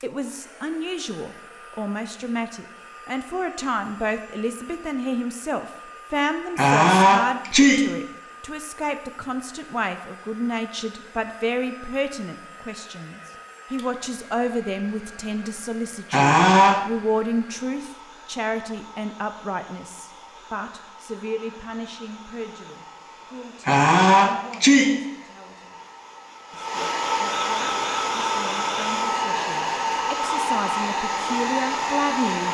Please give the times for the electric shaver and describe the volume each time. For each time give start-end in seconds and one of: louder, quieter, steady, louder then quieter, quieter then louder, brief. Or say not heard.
not heard.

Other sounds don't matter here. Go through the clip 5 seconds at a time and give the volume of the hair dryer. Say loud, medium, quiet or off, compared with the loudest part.
quiet, quiet, quiet, quiet, quiet, loud, loud.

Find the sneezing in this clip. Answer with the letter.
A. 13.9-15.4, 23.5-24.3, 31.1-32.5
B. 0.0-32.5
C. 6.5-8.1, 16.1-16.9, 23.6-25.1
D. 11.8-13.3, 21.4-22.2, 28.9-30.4
C.